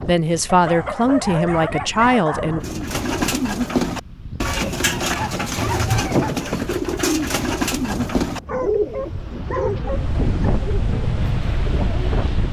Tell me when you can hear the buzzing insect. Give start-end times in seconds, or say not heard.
not heard.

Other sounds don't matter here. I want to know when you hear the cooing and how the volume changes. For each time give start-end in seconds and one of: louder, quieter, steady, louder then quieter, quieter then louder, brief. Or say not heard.
2.6-12.2 quieter.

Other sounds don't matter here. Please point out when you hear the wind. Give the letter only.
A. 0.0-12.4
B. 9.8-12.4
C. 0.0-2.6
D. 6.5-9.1
A.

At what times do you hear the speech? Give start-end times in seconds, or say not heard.
0.0-2.6.